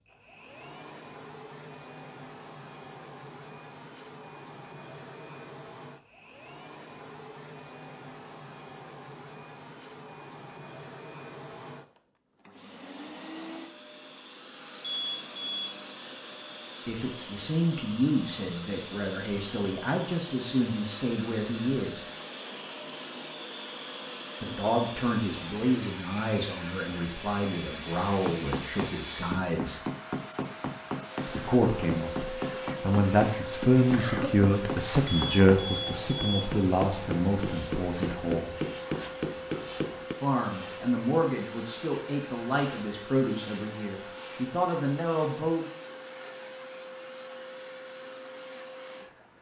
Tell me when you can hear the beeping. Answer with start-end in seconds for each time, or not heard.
14.8-15.8, 35.0-36.5.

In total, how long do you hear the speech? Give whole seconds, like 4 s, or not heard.
23 s.